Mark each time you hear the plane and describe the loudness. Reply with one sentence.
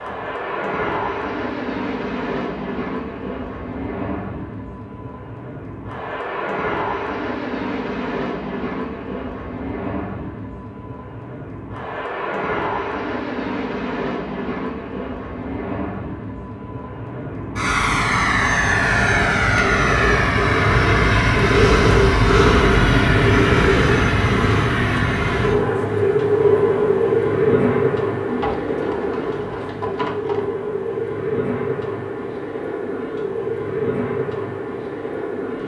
The plane can be heard from 0.0 to 35.6 s, getting louder then quieter.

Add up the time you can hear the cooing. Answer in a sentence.
The cooing can be heard for 2 seconds in total.